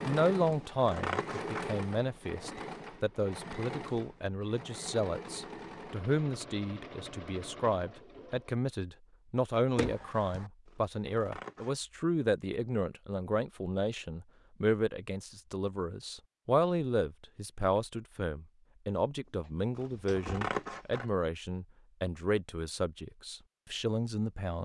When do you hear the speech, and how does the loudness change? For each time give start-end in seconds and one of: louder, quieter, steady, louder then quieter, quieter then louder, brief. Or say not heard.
0.1-24.6 steady.